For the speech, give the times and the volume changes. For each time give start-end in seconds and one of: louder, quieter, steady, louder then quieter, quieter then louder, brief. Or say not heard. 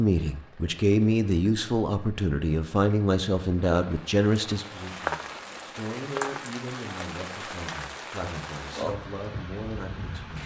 0.0-10.4 quieter.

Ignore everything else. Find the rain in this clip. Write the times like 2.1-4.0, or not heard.
0.0-10.4.